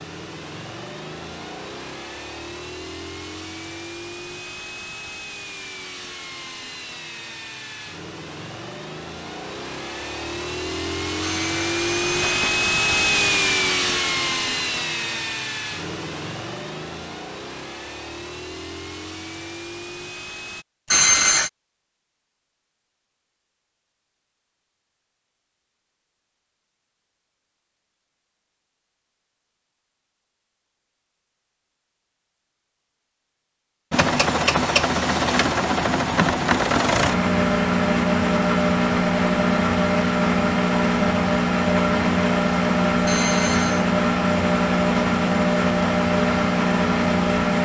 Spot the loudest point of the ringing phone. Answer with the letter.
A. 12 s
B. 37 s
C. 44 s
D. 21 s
D.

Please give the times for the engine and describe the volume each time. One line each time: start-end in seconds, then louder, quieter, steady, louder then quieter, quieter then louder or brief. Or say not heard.
0.0-20.6 louder then quieter
33.9-47.6 steady.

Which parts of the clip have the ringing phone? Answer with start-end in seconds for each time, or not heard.
11.2-12.6, 20.9-21.5, 43.0-43.9.